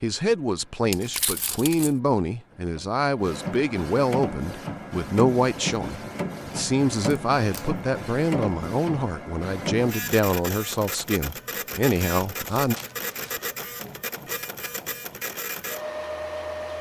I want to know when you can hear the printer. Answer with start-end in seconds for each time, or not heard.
0.1-16.7.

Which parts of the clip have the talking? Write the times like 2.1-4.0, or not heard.
0.0-12.8.